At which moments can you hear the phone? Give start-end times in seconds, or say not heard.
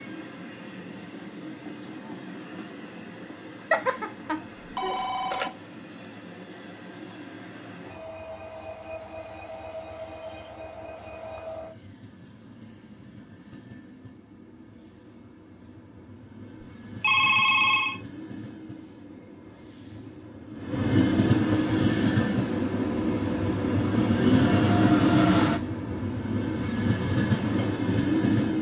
3.7-5.5, 17.0-18.0.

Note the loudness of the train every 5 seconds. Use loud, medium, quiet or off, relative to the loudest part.
quiet, quiet, quiet, quiet, loud, loud.